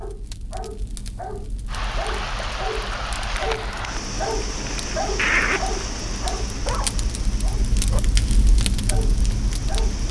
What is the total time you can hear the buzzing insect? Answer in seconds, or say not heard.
not heard.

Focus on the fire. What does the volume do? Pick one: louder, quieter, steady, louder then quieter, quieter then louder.
louder.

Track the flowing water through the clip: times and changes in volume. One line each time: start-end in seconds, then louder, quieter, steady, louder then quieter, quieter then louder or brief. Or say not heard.
1.6-10.0 quieter.